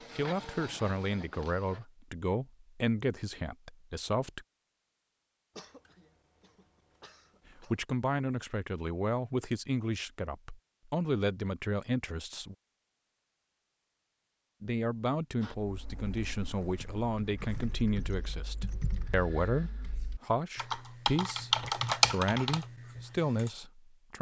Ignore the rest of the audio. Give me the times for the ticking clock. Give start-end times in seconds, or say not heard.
not heard.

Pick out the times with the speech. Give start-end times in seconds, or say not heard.
0.1-4.5, 7.6-12.6, 14.6-24.1.